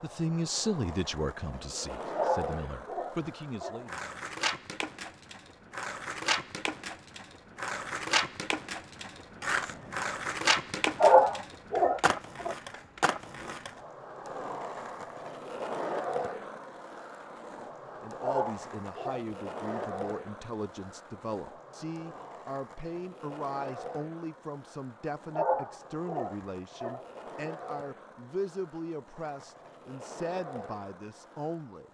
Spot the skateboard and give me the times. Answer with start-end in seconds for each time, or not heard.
0.0-31.8.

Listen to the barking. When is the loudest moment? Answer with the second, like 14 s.
11 s.